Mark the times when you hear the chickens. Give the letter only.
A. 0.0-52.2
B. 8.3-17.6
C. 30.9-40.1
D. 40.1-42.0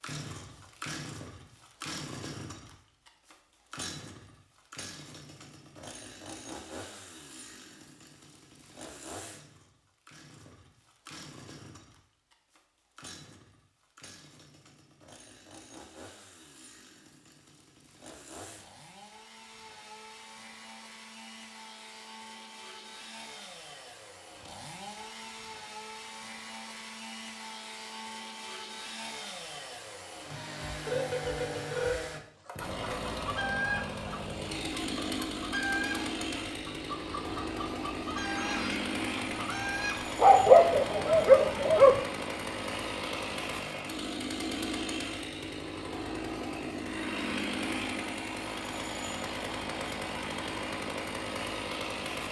C.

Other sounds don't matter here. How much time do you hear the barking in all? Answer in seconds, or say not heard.
2 s.